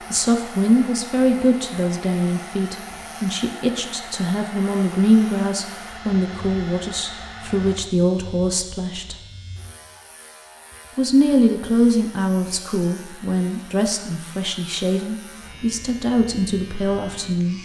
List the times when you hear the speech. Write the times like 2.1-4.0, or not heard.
0.1-9.2, 10.9-17.6.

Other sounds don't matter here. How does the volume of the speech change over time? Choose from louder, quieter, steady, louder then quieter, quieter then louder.
steady.